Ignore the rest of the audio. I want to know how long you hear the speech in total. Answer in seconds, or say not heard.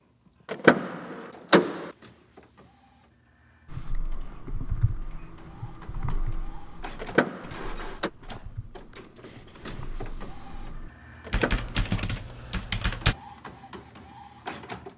not heard.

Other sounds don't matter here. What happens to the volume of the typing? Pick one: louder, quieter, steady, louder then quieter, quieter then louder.
quieter then louder.